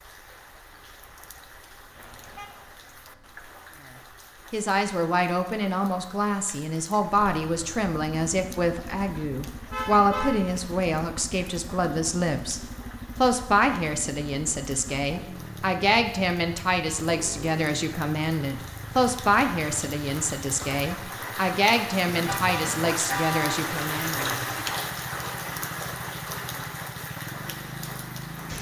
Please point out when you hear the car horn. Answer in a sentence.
The car horn can be heard from 1.9 to 2.6 s, from 9.7 to 10.6 s and from 22.2 to 23.6 s.